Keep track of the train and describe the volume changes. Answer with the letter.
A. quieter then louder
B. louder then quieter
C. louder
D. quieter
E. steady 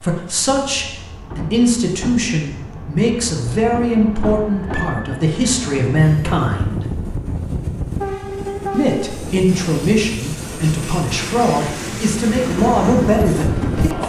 C.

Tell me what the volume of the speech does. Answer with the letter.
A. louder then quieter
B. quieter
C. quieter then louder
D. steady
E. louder
D.